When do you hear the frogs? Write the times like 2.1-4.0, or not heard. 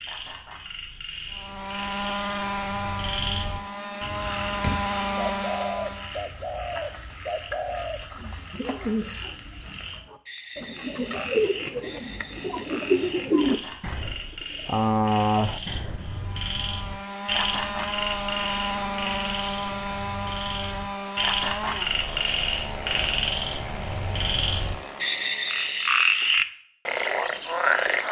0.0-28.0.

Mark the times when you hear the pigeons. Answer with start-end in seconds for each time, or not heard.
5.2-16.2.